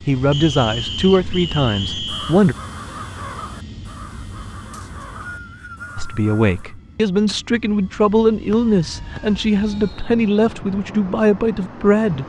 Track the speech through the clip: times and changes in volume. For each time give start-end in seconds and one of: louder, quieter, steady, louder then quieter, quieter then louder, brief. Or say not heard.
0.1-2.5 brief
6.0-12.2 steady.